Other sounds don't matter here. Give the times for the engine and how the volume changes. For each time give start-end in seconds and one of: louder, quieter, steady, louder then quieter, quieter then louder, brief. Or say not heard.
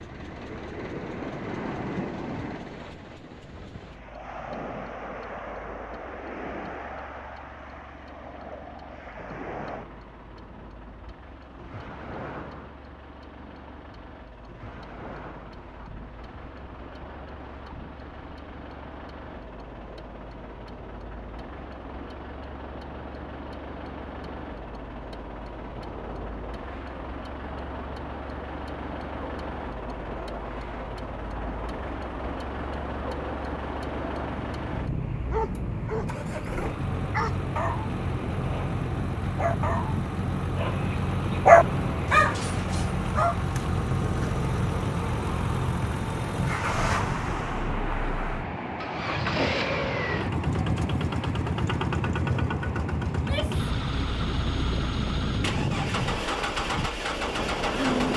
0.0-58.1 louder.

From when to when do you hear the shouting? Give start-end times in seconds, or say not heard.
53.1-53.6.